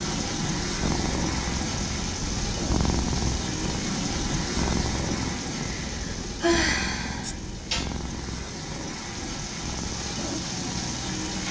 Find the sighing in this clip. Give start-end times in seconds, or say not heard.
5.6-8.0.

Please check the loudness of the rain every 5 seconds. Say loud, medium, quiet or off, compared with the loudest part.
loud, medium, loud.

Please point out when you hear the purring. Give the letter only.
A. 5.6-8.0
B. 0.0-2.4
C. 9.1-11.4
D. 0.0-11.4
D.